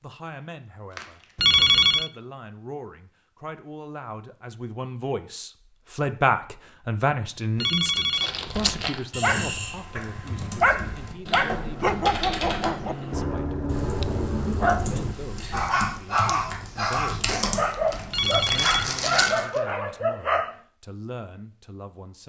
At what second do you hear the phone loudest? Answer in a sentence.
The volume of the phone peaks at 2 seconds.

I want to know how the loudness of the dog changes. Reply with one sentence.
The volume of the dog stays about the same.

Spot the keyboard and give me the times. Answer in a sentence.
You can hear the keyboard from 8.4 to 18.9 s.